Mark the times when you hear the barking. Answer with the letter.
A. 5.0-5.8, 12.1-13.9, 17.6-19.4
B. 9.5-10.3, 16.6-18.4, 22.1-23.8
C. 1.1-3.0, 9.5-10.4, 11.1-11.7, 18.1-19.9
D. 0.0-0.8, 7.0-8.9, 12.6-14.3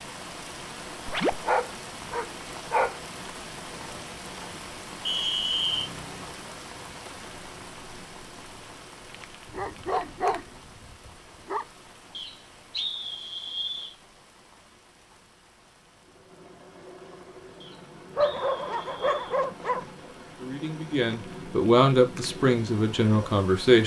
C.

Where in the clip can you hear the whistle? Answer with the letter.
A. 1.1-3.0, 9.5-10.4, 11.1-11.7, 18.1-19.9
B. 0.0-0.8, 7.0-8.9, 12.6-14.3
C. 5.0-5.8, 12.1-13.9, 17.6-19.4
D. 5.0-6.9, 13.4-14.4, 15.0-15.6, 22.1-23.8
C.